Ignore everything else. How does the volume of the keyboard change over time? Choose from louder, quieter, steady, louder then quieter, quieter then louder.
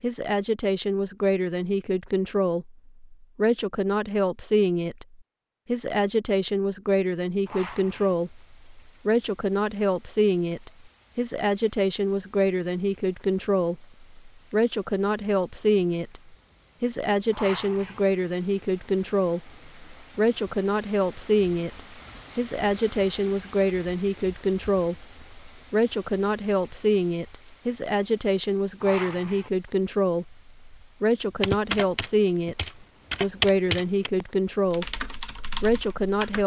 louder then quieter.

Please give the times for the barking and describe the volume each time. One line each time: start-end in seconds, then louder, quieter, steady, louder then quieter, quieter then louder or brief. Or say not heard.
not heard.